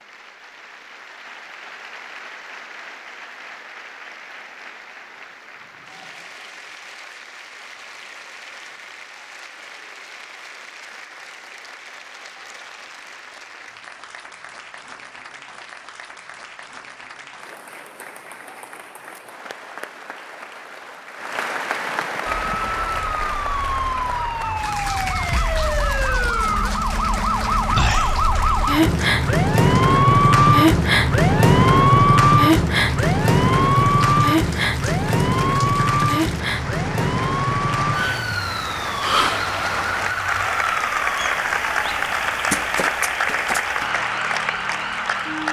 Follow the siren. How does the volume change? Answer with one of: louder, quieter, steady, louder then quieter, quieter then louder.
louder then quieter.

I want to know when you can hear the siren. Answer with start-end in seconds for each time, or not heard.
22.2-45.4.